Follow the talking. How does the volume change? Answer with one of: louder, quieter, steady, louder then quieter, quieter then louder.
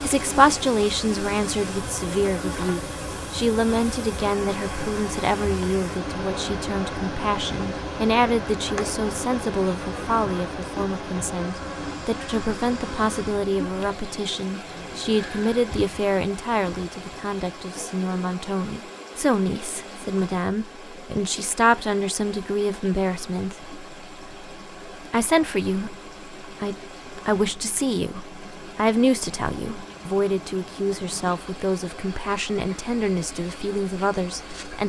steady.